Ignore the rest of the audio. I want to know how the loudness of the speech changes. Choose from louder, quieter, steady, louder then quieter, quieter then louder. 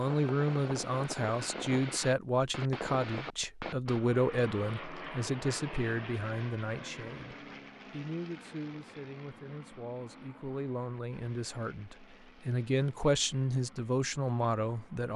quieter then louder.